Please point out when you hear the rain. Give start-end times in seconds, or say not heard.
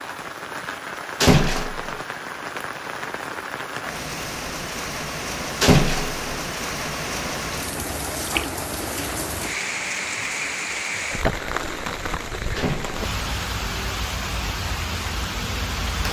0.0-16.0.